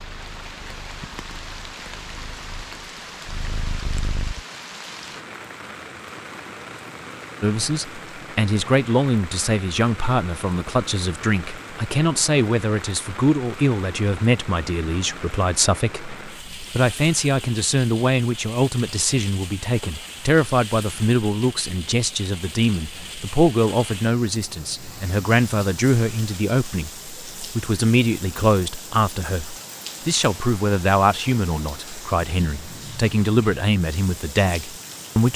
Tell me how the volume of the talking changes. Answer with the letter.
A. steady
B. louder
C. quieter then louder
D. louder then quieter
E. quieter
A.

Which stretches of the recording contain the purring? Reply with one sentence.
You can hear the purring from 0.0 to 4.5 s.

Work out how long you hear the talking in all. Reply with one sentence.
You can hear the talking for 28 seconds altogether.